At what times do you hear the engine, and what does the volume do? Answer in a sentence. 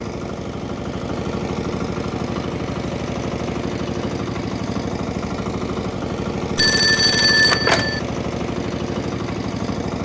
The engine can be heard from 0.0 to 10.0 s, at a steady volume.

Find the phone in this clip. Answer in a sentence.
The phone can be heard from 6.5 to 8.0 s.